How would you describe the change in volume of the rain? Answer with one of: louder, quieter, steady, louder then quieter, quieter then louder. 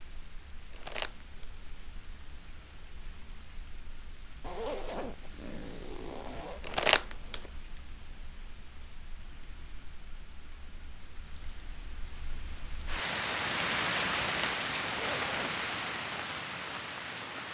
louder.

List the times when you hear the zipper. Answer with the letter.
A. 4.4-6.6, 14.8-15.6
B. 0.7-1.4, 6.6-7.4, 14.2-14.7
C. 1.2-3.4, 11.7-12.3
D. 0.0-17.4
A.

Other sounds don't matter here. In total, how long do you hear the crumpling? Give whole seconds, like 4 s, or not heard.
2 s.